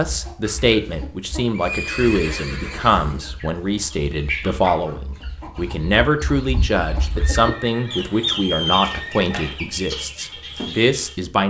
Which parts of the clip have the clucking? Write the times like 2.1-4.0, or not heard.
0.0-11.2.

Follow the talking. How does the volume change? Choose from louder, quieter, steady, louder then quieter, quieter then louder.
steady.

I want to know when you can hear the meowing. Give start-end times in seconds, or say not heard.
not heard.